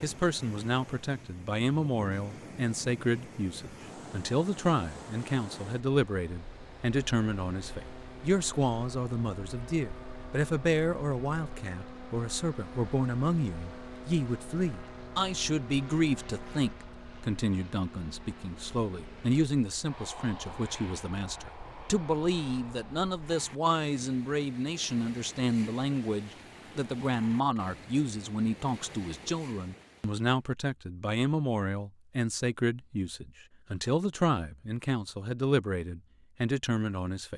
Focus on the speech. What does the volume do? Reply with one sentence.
The loudness of the speech stays about the same.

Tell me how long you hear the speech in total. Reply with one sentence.
The speech can be heard for 37 seconds in total.